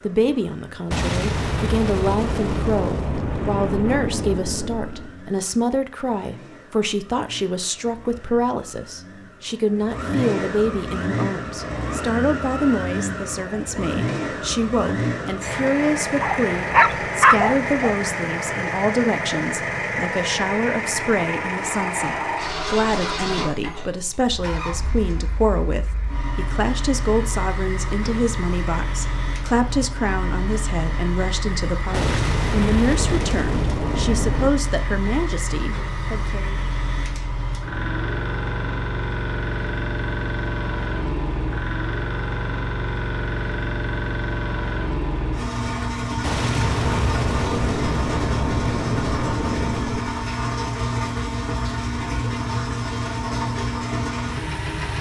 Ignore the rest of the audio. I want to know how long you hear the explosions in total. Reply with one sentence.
The explosions can be heard for 11 seconds in total.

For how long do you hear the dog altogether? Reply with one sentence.
The dog can be heard for 2 seconds in total.